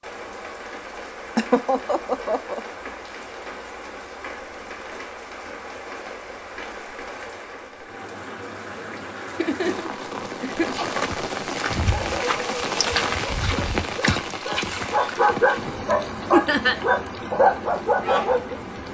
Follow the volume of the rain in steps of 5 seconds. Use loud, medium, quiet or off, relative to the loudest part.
medium, medium, loud, medium.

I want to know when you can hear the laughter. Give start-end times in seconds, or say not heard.
1.4-2.6, 9.3-10.8, 16.3-16.8.